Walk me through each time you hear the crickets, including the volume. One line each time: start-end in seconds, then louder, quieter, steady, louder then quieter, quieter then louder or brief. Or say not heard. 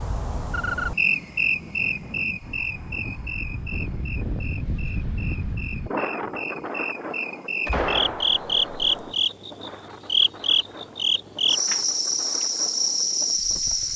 0.0-13.9 quieter then louder.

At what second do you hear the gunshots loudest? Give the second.
8 s.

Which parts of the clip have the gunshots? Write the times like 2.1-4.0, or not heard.
7.7-9.2.